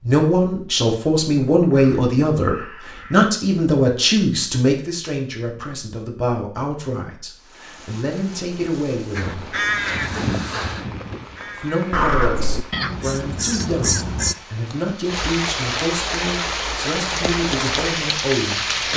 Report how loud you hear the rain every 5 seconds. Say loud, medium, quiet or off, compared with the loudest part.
off, quiet, quiet, loud.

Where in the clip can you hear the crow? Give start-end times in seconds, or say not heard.
1.7-3.3, 9.2-14.3.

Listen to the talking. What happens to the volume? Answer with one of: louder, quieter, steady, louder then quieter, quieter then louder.
quieter.